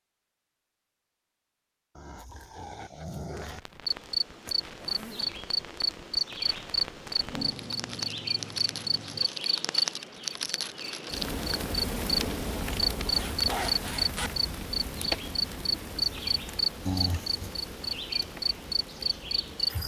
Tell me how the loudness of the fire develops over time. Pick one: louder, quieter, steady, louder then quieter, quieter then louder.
louder then quieter.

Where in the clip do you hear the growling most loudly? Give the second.
17 s.